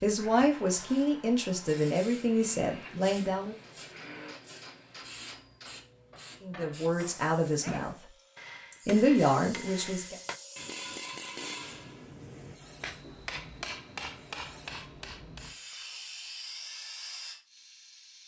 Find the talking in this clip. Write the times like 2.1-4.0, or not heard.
0.0-3.5, 6.4-8.0, 8.8-10.2.